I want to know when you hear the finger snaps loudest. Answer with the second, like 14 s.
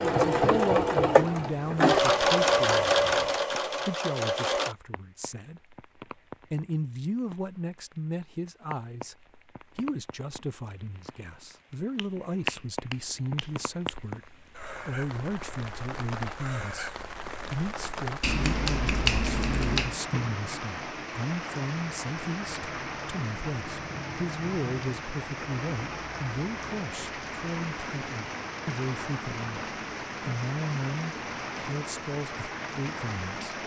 19 s.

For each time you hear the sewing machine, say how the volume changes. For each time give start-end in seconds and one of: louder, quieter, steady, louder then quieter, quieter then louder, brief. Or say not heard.
0.0-4.8 quieter.